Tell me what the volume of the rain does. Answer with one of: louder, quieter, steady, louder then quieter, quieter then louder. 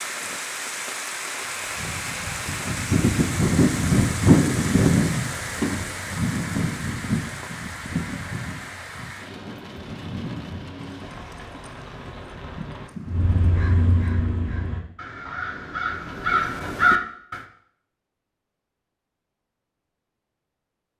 quieter.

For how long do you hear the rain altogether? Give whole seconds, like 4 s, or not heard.
13 s.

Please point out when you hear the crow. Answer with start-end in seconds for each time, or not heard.
13.1-17.4.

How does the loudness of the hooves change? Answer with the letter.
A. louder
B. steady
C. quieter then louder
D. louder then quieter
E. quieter
E.